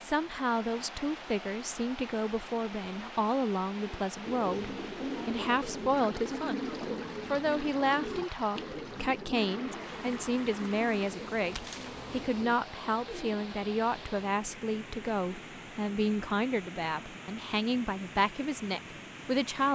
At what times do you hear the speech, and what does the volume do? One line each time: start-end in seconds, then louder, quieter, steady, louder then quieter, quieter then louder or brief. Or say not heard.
0.0-19.6 steady.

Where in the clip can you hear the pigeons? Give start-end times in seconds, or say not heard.
3.8-13.4.